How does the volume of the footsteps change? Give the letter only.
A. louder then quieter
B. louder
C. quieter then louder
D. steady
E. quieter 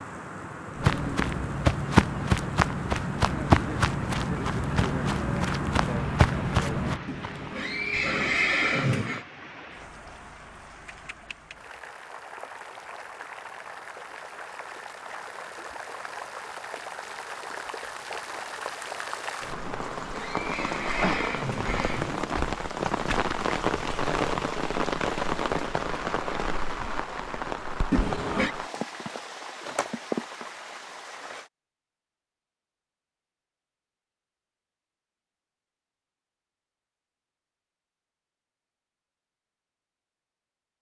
E.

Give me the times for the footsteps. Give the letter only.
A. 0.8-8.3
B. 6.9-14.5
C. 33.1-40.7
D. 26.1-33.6
A.